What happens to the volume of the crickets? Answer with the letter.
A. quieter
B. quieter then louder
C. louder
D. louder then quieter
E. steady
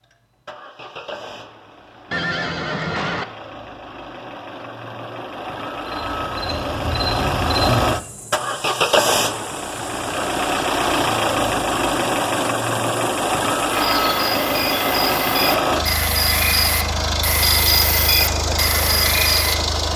B.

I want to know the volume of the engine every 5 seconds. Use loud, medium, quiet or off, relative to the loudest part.
quiet, loud, loud, loud.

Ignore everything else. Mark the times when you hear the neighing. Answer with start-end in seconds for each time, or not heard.
2.1-3.2.